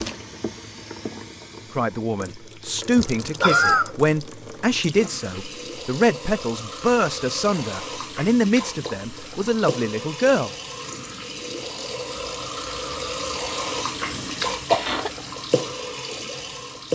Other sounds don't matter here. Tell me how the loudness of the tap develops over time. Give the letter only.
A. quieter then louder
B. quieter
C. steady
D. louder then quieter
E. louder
E.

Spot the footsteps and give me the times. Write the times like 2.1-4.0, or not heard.
not heard.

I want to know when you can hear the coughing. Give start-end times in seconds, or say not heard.
3.0-4.0, 14.2-15.1.